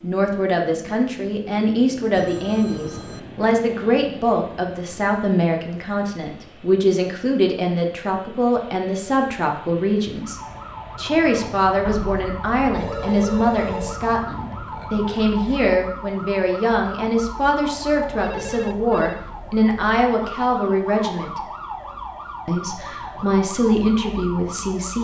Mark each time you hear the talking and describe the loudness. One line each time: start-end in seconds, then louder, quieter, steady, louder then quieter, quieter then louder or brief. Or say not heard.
0.0-21.4 steady
22.4-24.9 brief.